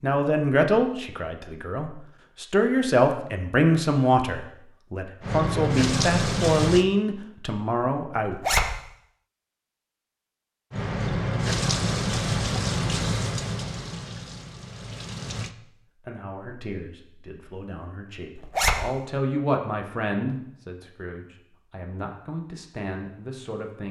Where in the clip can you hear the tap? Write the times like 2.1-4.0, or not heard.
5.2-6.8, 10.7-15.6.